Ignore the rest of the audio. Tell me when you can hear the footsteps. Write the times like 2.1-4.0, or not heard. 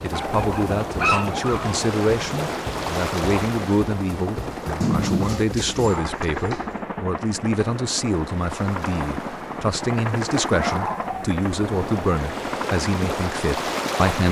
not heard.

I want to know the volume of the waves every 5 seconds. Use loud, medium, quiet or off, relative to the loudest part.
loud, medium, loud.